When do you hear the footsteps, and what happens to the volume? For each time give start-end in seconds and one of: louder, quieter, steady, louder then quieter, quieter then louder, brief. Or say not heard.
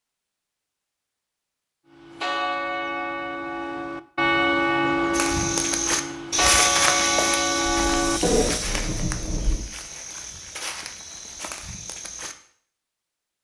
5.1-12.3 quieter.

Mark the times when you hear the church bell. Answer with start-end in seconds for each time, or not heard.
1.9-8.8.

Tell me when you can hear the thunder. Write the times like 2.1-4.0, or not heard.
7.7-9.7.